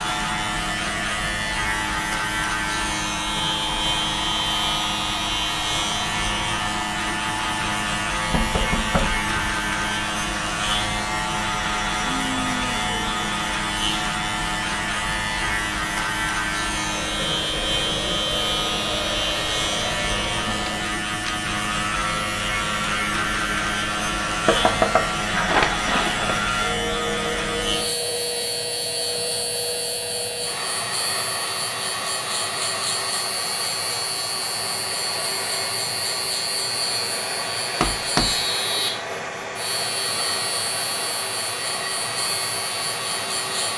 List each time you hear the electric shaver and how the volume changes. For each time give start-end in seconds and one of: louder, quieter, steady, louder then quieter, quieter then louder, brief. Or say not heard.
0.0-43.7 steady.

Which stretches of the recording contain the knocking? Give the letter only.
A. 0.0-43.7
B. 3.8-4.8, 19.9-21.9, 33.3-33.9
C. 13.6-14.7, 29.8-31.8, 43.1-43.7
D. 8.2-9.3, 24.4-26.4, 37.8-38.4
D.